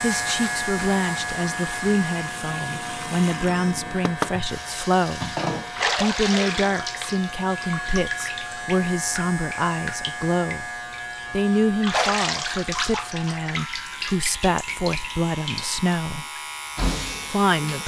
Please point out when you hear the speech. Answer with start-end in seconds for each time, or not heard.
0.0-5.3, 6.0-10.7, 11.3-16.2, 17.3-17.8.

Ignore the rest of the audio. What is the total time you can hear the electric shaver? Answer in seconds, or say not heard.
18 s.